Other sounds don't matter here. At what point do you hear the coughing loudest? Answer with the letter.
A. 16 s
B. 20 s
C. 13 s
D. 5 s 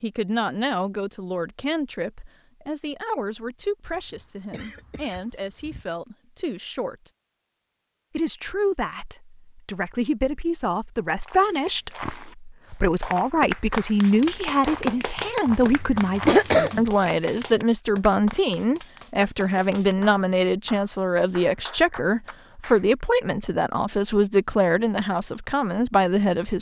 A.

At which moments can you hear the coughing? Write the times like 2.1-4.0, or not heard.
3.9-5.8, 15.7-16.9.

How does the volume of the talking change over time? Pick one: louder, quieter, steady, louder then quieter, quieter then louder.
louder.